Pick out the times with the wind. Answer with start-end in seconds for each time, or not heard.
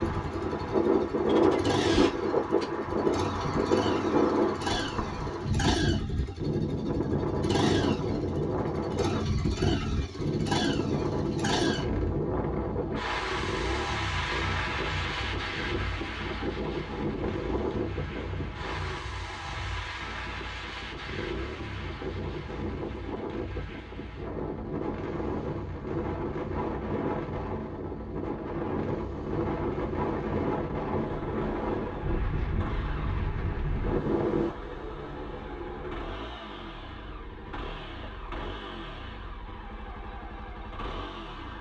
0.0-34.5.